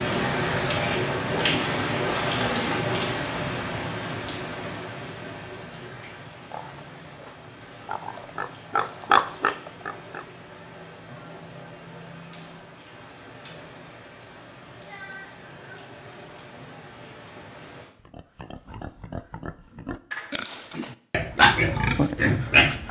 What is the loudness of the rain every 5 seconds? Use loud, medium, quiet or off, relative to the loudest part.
loud, quiet, quiet, quiet, off.